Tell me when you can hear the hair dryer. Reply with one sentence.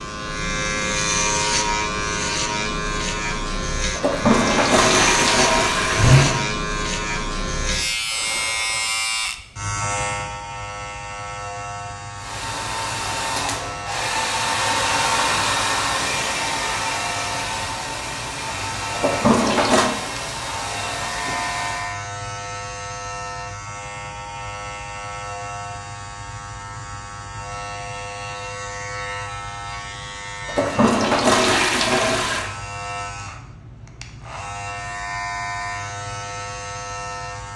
You can hear the hair dryer from 12.2 to 21.9 s.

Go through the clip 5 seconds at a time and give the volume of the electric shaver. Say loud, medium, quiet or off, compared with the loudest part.
loud, loud, medium, medium, medium, medium, medium, medium.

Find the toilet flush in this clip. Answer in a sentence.
You can hear the toilet flush from 4.0 to 6.5 s, from 18.9 to 19.9 s and from 30.4 to 32.5 s.